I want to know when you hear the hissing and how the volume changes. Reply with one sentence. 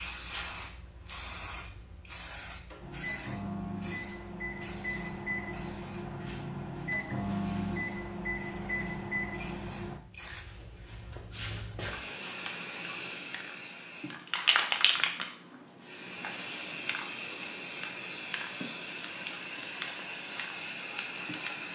The hissing can be heard from 0.0 to 21.7 s, getting quieter then louder.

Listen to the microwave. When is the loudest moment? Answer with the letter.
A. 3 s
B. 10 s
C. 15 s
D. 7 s
D.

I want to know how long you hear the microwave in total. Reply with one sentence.
The microwave can be heard for 7 seconds in total.